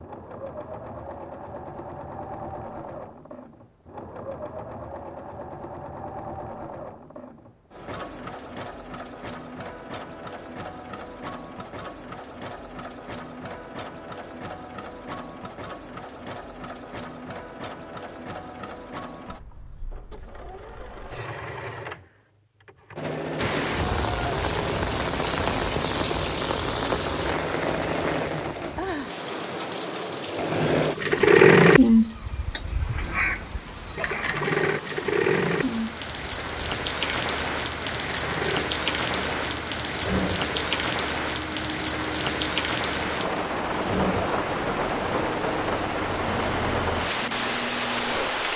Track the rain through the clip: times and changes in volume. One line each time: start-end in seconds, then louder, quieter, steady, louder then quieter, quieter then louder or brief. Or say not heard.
23.4-48.5 quieter then louder.